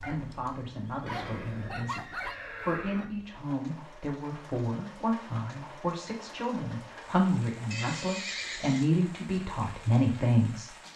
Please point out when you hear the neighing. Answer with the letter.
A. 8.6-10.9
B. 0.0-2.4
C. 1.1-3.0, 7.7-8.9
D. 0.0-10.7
C.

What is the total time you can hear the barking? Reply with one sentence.
The barking can be heard for 2 seconds in total.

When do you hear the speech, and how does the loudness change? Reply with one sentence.
The speech can be heard from 0.0 to 10.7 s, getting louder.